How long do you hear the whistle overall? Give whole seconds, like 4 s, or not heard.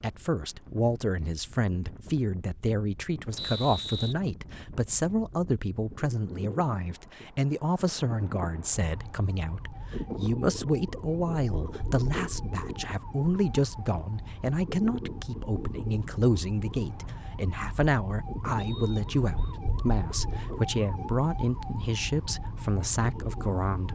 2 s.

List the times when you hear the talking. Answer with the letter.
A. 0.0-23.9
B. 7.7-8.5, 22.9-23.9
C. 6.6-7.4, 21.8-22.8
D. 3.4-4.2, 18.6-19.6
A.